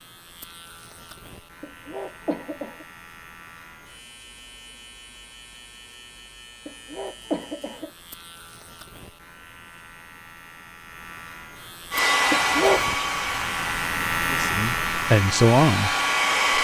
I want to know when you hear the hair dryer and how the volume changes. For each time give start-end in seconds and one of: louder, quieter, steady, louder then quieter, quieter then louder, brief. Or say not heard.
11.9-16.6 quieter then louder.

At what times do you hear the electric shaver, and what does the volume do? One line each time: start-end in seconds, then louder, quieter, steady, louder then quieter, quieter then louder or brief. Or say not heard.
0.0-16.6 louder.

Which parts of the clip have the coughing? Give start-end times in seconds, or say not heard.
1.6-2.9, 6.7-7.9, 12.3-12.8.